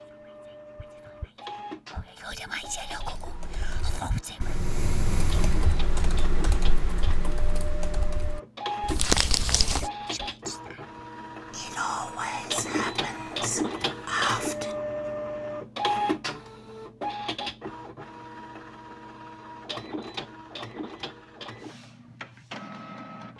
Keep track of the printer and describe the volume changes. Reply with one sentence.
The volume of the printer goes up, then down.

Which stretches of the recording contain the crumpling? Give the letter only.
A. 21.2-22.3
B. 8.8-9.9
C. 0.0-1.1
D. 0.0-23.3
B.